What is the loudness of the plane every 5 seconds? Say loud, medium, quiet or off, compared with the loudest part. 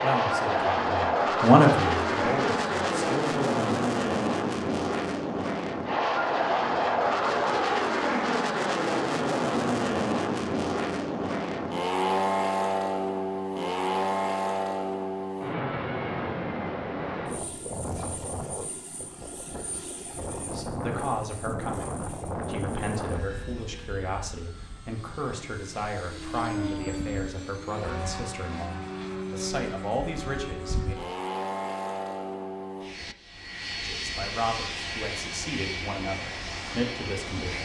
loud, loud, loud, medium, medium, medium, medium, medium.